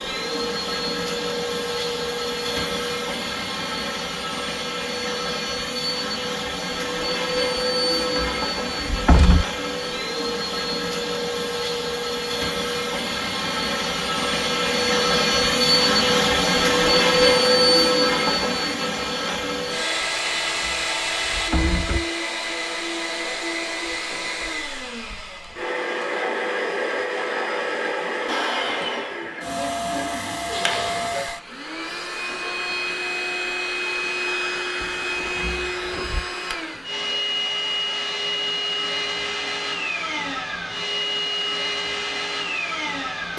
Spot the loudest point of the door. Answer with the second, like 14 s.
9 s.